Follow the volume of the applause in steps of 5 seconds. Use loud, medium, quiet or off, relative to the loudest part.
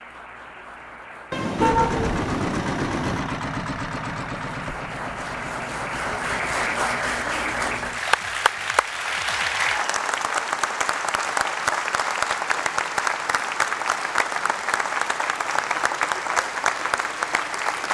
quiet, loud, loud, loud.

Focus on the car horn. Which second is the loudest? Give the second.
2 s.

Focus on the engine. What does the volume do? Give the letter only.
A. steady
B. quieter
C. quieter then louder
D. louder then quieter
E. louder
B.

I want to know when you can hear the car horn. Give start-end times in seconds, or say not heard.
1.3-3.2.